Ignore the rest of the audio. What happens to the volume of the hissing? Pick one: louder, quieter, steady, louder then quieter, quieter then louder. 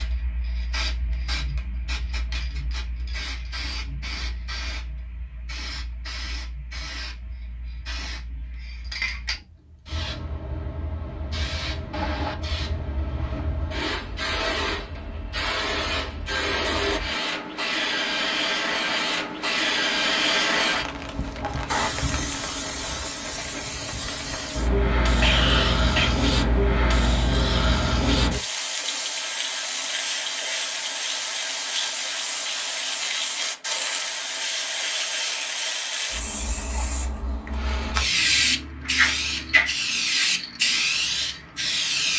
louder.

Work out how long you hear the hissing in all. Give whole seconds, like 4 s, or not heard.
42 s.